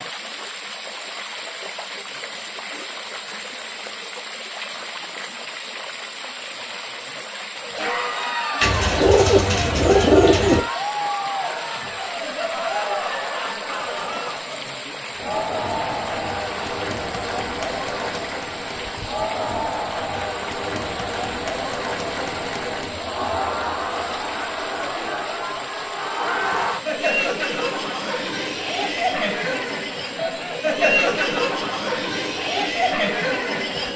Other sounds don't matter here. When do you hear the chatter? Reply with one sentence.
The chatter can be heard from 7.5 to 33.9 s.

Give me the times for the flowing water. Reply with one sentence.
The flowing water can be heard from 0.0 to 33.9 s.